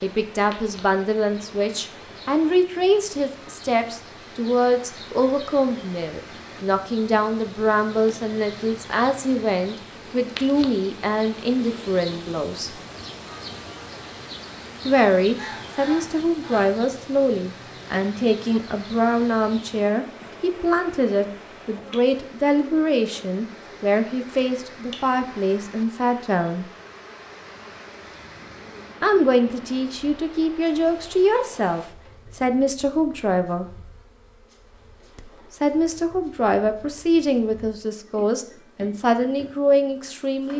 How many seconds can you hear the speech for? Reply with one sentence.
The speech can be heard for 35 seconds in total.